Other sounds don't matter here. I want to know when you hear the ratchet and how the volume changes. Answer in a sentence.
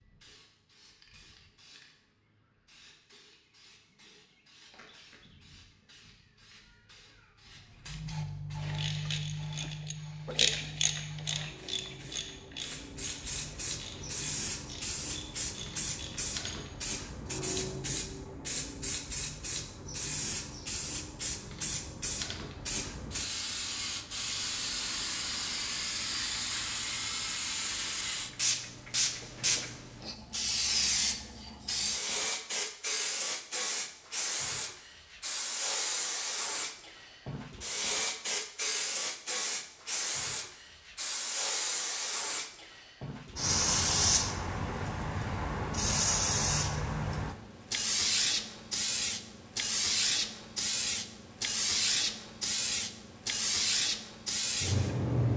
You can hear the ratchet from 8.7 to 16.7 s, getting quieter.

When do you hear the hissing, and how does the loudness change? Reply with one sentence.
You can hear the hissing from 0.0 to 55.3 s, getting louder.